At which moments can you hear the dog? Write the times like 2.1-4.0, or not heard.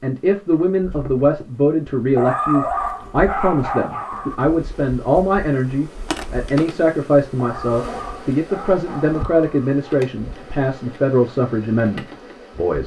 2.1-4.4, 7.3-9.8.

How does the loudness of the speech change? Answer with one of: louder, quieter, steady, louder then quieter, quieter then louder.
steady.